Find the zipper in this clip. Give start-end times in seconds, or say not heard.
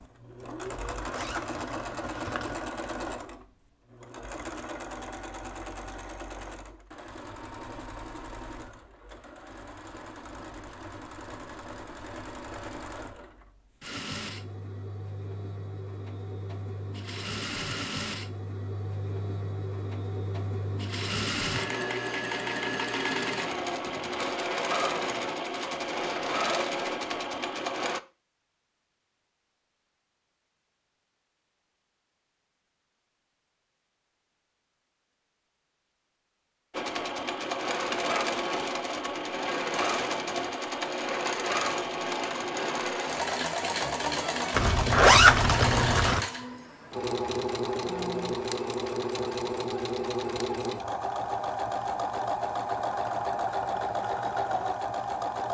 0.7-2.6, 44.5-46.2.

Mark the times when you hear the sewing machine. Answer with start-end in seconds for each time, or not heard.
0.0-28.0, 36.7-55.4.